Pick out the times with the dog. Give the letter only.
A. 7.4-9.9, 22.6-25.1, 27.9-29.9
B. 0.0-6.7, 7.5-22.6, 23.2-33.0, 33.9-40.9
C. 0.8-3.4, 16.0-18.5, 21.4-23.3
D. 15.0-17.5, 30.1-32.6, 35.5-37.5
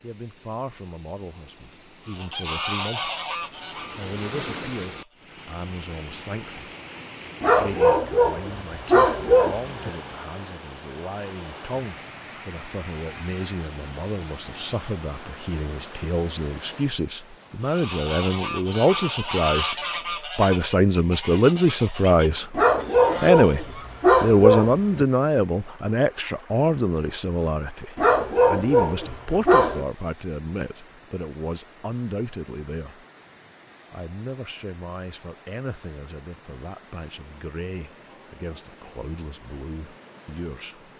A.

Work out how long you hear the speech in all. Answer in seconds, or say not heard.
39 s.